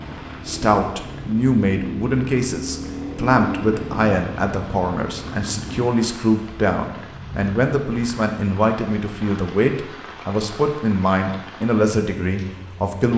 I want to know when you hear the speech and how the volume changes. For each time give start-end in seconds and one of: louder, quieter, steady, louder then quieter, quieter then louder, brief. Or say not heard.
0.5-13.1 steady.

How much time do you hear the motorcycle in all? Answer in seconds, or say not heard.
6 s.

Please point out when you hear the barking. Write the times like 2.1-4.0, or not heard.
not heard.